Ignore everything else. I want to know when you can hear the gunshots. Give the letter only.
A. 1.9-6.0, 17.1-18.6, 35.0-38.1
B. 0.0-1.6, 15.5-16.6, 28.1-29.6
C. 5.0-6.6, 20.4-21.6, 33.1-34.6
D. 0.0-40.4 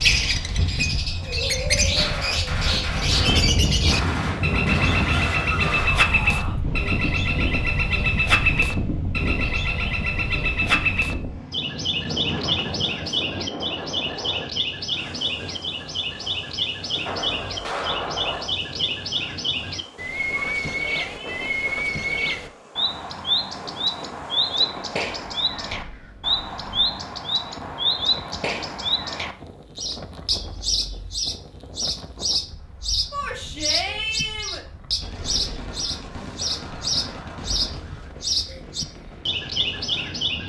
A.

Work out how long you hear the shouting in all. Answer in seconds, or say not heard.
4 s.